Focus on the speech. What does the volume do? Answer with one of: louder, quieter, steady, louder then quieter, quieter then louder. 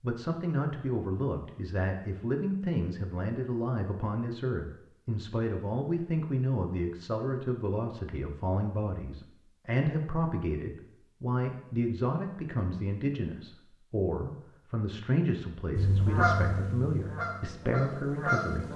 steady.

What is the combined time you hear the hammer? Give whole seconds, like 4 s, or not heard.
not heard.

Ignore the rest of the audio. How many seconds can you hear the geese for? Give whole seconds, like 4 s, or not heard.
3 s.